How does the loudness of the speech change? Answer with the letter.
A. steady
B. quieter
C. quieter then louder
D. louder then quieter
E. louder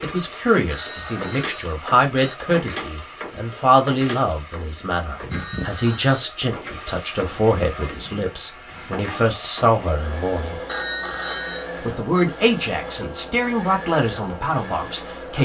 A.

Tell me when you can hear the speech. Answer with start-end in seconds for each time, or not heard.
0.0-10.6, 11.8-15.3.